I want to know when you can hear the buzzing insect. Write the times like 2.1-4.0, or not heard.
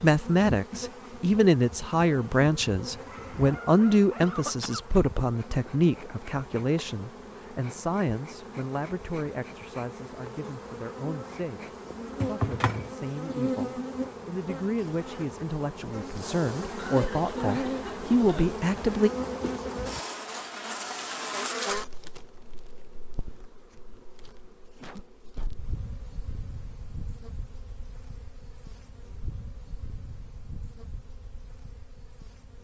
0.0-32.5.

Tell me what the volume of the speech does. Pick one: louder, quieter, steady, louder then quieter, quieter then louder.
quieter then louder.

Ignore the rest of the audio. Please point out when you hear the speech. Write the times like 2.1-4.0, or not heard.
0.0-19.1.